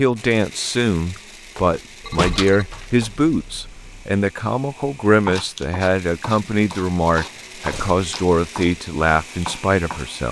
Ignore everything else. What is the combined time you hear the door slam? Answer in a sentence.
The door slam can be heard for 2 seconds in total.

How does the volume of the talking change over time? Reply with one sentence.
The volume of the talking stays about the same.